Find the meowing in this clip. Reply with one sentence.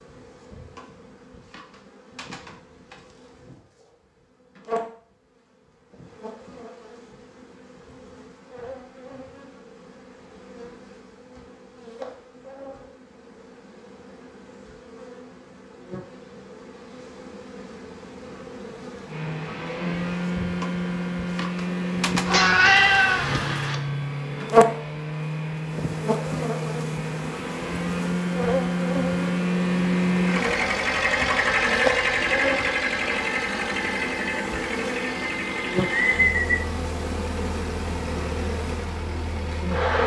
The meowing can be heard from 22.2 to 23.8 s.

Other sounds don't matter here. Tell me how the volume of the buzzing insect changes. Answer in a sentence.
The volume of the buzzing insect goes up.